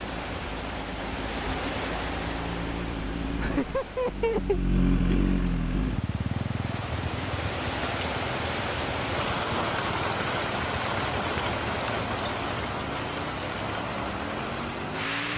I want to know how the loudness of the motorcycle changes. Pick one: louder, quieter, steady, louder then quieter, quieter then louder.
louder then quieter.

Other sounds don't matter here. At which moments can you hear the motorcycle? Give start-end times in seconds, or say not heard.
0.0-15.3.